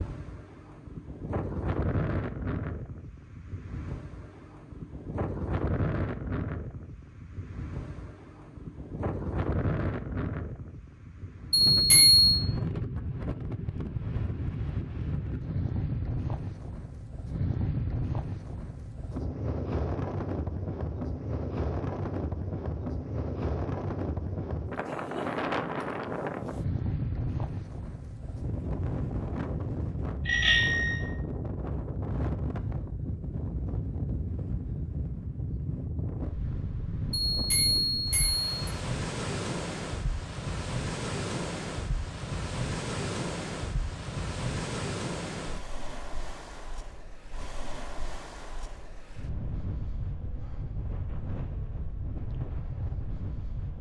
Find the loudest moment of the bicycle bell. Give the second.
12 s.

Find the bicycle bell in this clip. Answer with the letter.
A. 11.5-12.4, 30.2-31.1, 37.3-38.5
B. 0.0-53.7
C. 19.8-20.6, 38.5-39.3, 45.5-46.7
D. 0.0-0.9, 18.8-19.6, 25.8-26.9
A.